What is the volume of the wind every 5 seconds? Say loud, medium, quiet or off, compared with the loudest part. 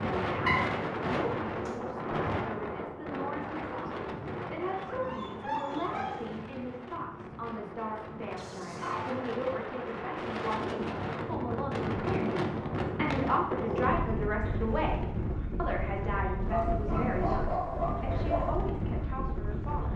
loud, medium, loud, loud.